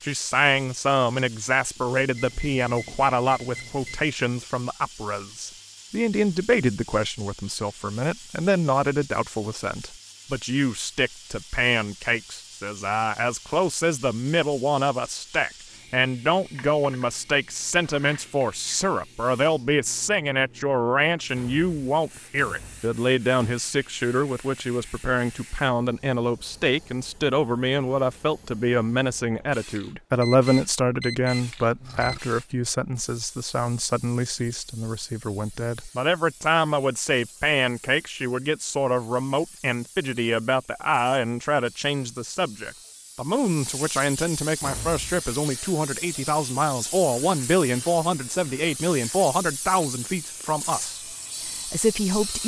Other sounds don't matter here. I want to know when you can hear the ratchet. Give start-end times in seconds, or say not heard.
not heard.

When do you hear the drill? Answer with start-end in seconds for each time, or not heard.
not heard.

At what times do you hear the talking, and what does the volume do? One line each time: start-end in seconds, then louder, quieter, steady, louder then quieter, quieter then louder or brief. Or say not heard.
0.0-52.4 steady.